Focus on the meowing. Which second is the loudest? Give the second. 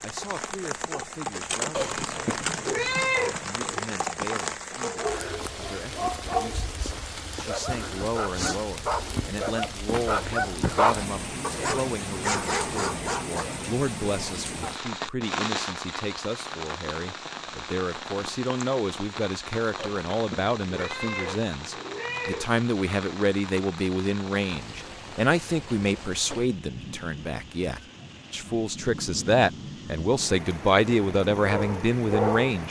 3 s.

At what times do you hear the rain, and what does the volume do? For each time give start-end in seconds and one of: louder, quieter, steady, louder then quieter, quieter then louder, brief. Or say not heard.
0.0-32.6 quieter.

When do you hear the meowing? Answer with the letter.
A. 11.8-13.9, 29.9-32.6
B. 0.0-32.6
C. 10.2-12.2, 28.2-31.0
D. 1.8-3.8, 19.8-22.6
D.